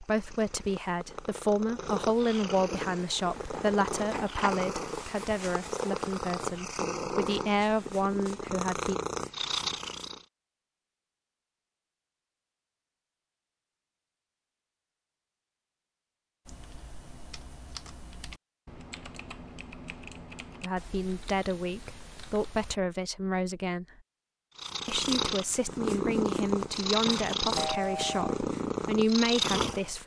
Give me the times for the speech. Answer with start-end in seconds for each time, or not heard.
0.0-9.0, 20.6-23.9, 24.9-30.0.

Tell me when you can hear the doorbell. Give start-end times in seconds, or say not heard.
27.6-28.4.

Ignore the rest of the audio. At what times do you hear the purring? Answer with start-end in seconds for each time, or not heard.
0.0-10.2, 24.6-30.0.